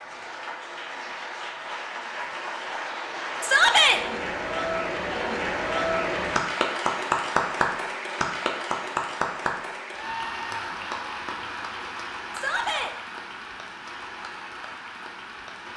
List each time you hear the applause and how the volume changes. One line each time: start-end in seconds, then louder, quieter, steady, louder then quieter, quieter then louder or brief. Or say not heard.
0.0-15.7 louder then quieter.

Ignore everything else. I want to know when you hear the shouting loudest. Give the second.
4 s.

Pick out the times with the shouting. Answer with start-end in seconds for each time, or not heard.
3.4-4.0, 12.3-12.9.